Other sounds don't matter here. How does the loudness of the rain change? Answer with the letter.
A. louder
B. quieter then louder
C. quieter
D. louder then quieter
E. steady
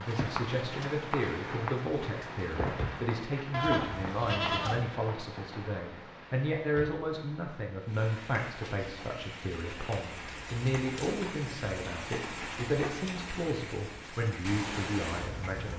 B.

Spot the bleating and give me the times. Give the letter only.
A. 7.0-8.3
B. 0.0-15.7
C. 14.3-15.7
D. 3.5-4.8
D.